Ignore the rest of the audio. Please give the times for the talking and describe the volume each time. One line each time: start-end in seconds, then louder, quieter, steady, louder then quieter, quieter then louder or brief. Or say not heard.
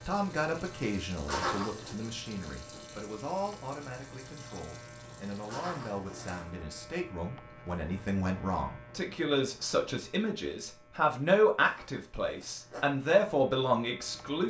0.1-14.4 louder.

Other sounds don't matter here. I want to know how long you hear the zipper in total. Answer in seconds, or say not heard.
3 s.